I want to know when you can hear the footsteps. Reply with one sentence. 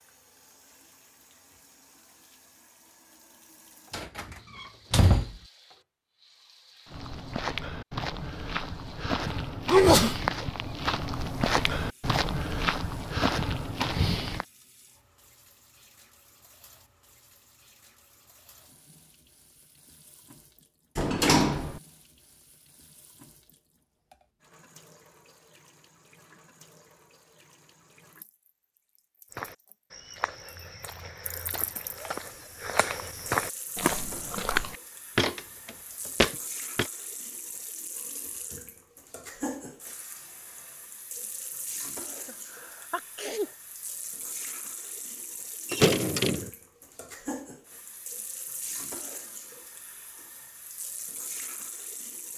The footsteps can be heard from 6.8 to 14.4 s and from 29.3 to 36.9 s.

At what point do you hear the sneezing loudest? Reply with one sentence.
The volume of the sneezing peaks at 10 seconds.